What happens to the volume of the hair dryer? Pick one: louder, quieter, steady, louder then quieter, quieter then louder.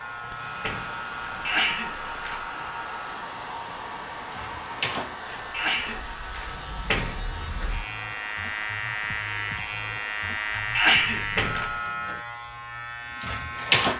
quieter.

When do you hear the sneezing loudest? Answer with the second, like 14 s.
11 s.